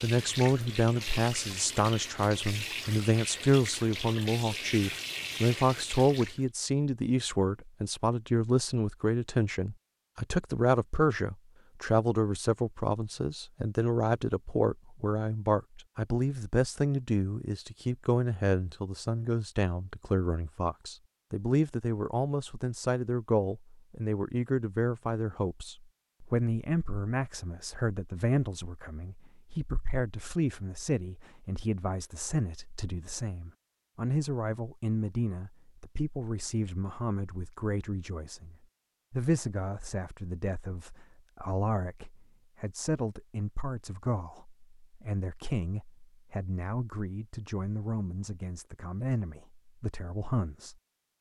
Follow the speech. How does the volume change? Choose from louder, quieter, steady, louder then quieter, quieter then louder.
quieter.